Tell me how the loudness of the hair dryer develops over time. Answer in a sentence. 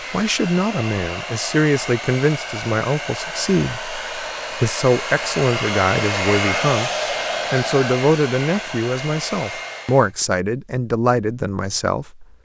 The volume of the hair dryer goes up, then down.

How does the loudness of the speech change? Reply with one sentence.
The loudness of the speech stays about the same.